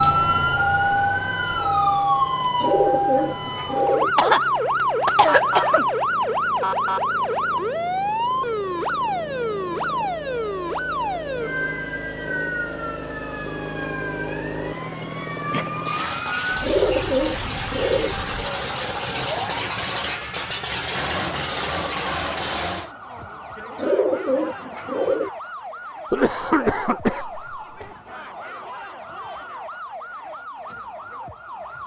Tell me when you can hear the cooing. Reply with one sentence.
You can hear the cooing from 2.6 to 4.1 s, from 16.6 to 18.1 s and from 23.8 to 25.3 s.